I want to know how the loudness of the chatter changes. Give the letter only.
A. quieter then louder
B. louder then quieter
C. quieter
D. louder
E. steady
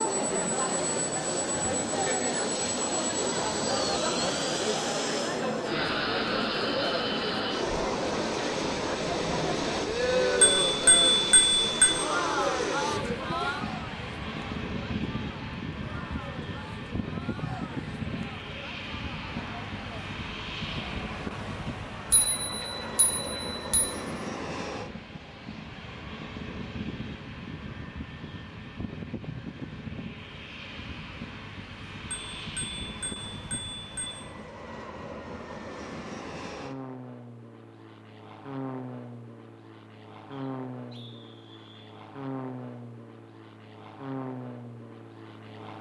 C.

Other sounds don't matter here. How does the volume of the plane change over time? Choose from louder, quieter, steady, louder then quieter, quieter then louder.
quieter.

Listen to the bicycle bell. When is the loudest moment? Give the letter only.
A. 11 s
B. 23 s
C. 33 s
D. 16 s
A.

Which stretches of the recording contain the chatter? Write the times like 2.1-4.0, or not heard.
0.0-23.6.